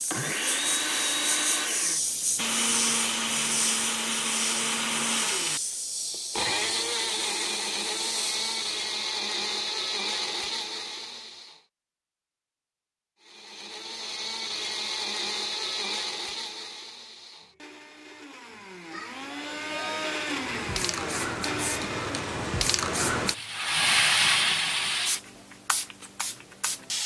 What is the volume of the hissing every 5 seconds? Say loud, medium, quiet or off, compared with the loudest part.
medium, medium, off, off, loud, medium.